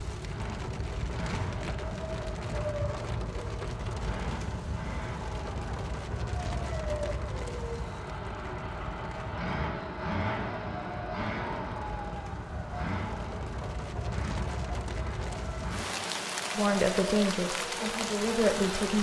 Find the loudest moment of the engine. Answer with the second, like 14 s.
10 s.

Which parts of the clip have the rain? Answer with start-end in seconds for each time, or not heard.
0.0-18.9.